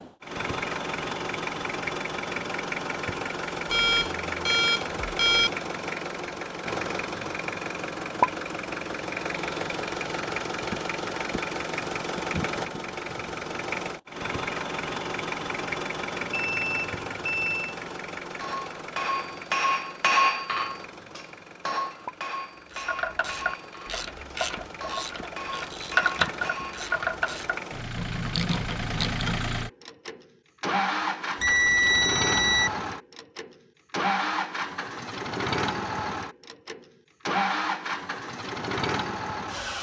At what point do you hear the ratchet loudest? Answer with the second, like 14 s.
26 s.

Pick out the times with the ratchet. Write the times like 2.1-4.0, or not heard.
22.7-29.5.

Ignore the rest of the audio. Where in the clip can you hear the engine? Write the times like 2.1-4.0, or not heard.
0.0-39.7.